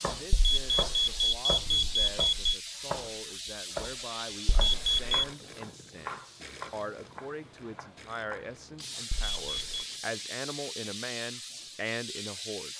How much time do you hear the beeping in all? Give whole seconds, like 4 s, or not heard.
4 s.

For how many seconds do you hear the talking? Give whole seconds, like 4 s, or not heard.
13 s.